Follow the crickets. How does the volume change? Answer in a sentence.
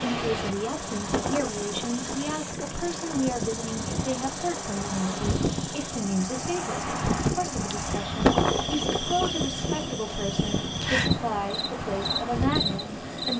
The loudness of the crickets goes up.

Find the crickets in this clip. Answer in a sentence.
The crickets can be heard from 0.0 to 13.3 s.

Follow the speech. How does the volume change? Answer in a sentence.
The loudness of the speech stays about the same.